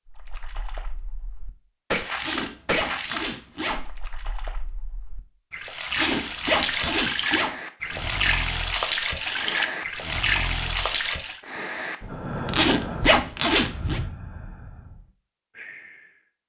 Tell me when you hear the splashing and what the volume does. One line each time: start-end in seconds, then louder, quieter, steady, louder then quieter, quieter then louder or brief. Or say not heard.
0.1-11.4 louder.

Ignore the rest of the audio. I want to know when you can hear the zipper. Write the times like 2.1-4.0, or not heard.
2.1-3.9, 5.9-7.5, 12.4-14.0.